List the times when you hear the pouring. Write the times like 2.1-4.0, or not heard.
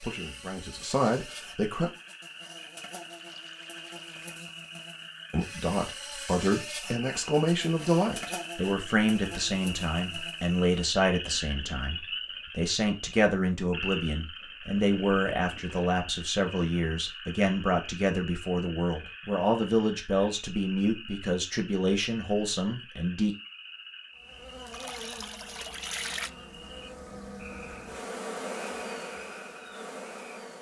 3.1-4.2, 14.8-15.8, 24.7-26.3.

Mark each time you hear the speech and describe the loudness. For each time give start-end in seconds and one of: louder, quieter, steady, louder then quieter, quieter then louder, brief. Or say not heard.
0.0-1.9 brief
5.3-23.4 steady.